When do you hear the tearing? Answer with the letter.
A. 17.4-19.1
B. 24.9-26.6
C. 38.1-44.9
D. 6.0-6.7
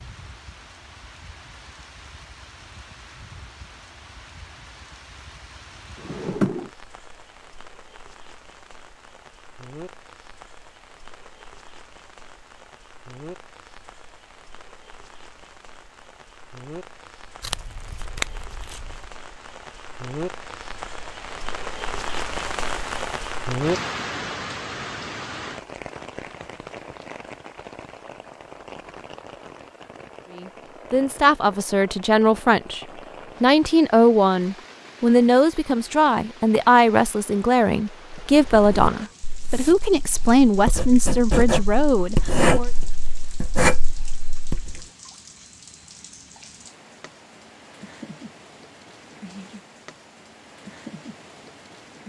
A.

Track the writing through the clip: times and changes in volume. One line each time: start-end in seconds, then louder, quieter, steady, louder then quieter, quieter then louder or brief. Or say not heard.
38.1-44.9 louder.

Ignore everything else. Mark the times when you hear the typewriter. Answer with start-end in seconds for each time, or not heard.
not heard.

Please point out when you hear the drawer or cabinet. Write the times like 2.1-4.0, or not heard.
6.0-6.7.